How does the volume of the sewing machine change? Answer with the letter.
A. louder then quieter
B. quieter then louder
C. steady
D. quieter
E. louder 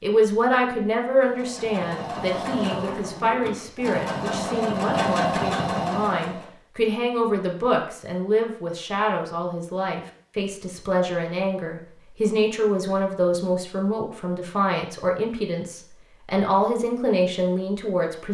E.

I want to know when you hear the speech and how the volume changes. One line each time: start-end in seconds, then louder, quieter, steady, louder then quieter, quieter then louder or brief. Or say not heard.
0.0-18.3 steady.